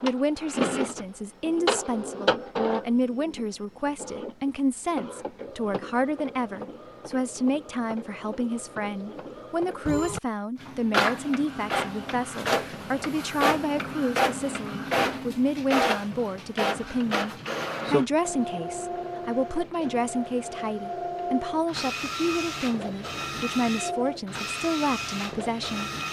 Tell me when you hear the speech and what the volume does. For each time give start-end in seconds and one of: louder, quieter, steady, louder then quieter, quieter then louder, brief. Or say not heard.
0.0-25.9 steady.